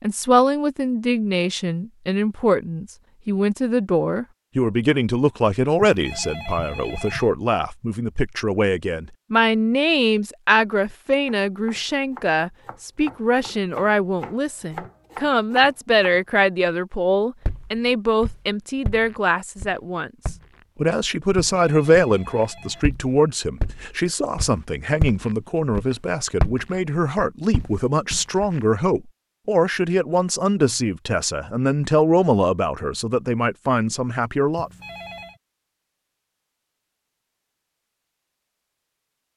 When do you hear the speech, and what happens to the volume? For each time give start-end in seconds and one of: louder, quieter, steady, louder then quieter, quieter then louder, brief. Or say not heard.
0.0-34.7 steady.